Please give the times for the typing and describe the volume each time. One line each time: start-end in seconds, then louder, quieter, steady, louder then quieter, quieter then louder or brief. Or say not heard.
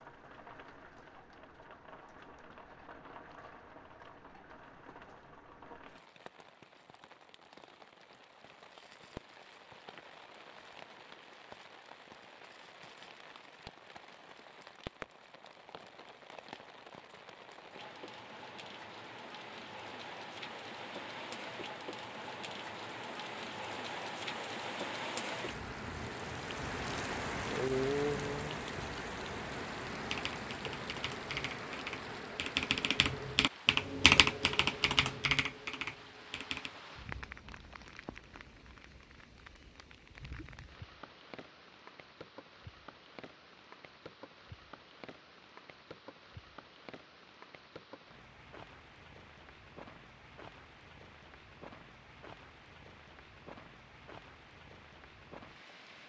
29.9-36.7 louder then quieter.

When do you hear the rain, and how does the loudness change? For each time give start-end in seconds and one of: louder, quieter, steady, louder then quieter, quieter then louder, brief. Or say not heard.
0.0-56.0 louder then quieter.